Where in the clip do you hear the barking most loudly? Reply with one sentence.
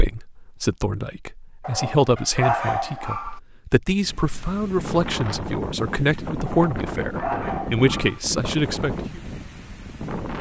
The loudest moment of the barking is at 3 seconds.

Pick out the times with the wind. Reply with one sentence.
The wind can be heard from 4.0 to 10.3 s.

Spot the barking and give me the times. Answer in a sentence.
The barking can be heard from 1.6 to 3.4 s and from 6.5 to 8.2 s.